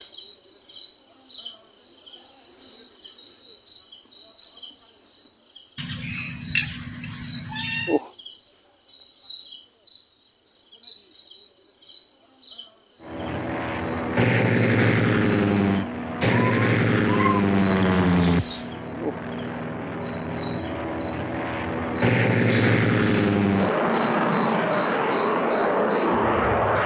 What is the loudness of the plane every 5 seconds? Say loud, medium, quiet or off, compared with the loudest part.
off, off, loud, loud, loud, loud.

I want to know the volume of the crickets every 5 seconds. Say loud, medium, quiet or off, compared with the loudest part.
loud, loud, medium, medium, medium, medium.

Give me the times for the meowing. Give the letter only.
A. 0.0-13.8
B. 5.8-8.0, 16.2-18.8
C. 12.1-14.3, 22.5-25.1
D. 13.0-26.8
B.